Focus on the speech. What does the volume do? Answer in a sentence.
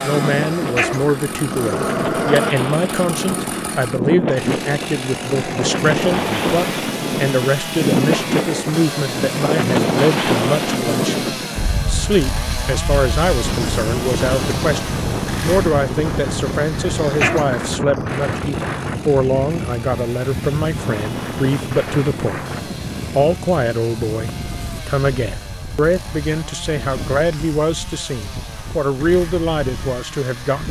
The volume of the speech stays about the same.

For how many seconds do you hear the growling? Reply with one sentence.
You can hear the growling for 3 seconds altogether.